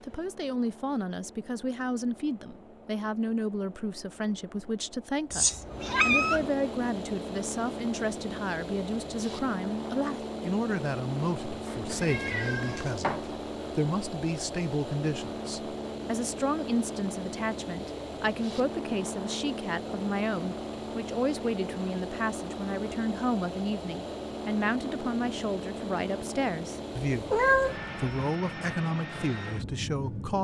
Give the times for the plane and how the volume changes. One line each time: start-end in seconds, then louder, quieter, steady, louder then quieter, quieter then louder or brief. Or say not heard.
0.0-30.3 louder.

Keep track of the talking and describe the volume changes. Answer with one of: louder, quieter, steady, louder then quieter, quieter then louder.
steady.